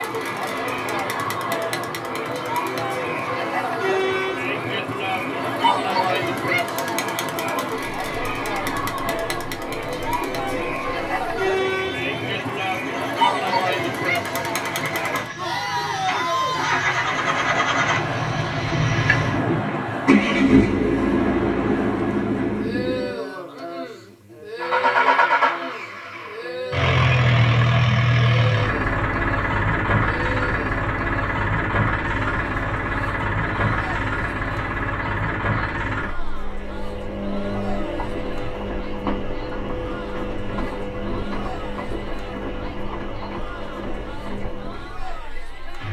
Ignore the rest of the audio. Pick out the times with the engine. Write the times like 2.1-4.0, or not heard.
0.0-23.2, 24.6-45.8.